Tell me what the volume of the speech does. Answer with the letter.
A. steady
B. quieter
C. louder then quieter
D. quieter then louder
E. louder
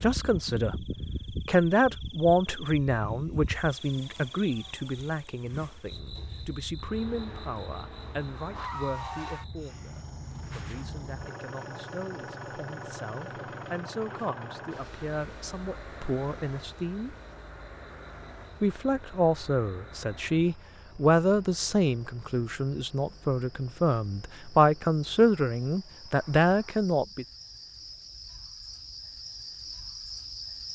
D.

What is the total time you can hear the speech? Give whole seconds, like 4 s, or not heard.
26 s.